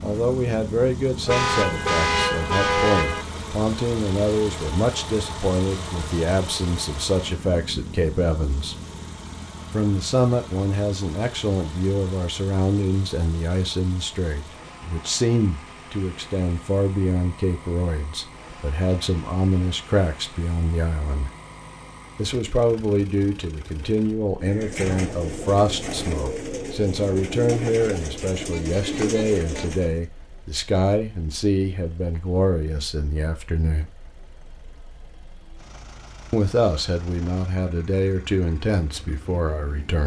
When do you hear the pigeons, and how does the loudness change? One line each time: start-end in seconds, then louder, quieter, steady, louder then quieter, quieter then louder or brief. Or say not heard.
24.4-30.0 steady.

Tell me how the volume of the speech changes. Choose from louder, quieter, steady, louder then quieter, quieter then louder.
steady.